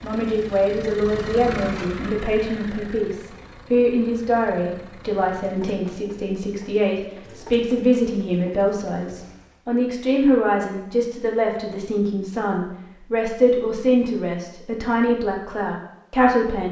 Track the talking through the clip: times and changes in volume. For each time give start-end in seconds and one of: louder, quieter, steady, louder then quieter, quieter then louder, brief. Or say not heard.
0.0-16.6 steady.